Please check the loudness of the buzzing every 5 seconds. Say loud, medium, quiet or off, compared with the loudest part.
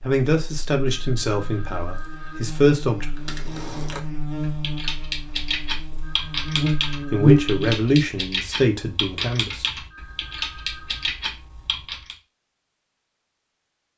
medium, loud, off.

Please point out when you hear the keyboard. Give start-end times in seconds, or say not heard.
3.0-12.2.